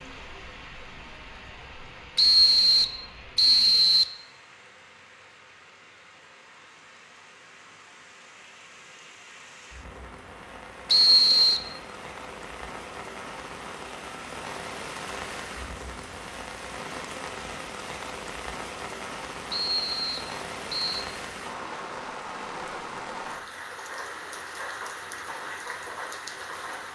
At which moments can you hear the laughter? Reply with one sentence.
The laughter can't be heard in this clip.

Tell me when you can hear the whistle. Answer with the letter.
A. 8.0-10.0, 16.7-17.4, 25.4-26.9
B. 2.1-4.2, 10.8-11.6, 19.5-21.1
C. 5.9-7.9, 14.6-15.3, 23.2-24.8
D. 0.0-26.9
B.